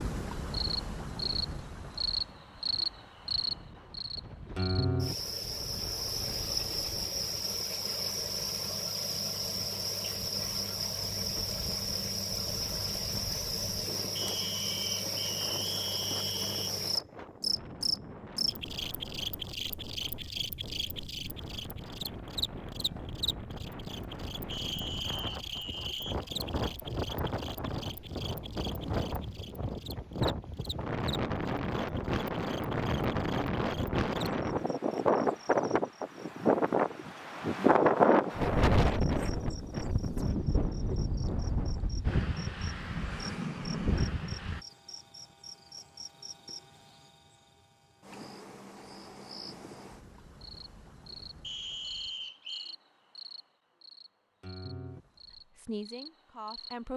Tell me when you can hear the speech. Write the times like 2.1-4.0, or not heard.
55.6-56.9.